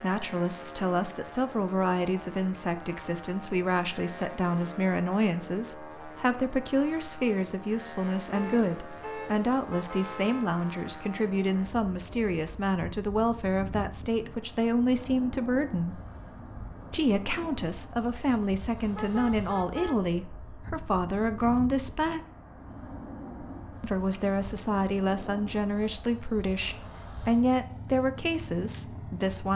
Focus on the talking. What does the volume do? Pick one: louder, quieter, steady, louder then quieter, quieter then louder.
steady.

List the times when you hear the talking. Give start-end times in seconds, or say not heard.
0.0-16.0, 16.9-22.2, 23.8-29.5.